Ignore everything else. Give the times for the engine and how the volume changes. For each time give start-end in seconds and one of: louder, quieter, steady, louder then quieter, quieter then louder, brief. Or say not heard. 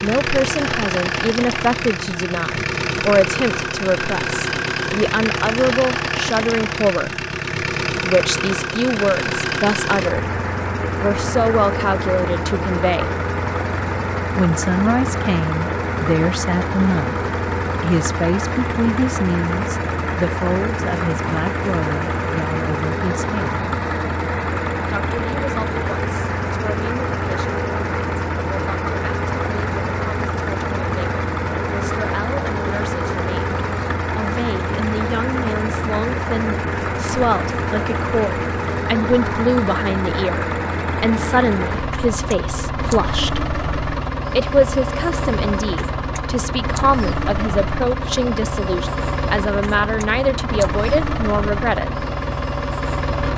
0.0-53.3 steady.